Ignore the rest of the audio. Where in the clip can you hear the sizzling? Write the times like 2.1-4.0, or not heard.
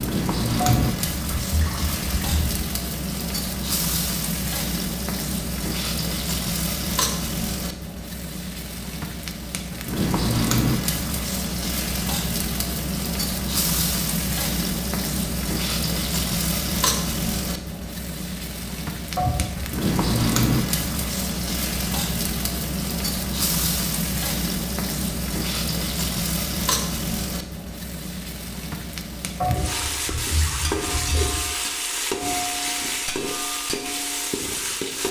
0.0-35.0.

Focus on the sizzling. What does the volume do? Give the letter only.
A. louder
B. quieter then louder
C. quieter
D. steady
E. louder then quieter
D.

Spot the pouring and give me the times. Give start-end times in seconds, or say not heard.
0.6-2.6, 19.1-19.7, 29.4-31.4.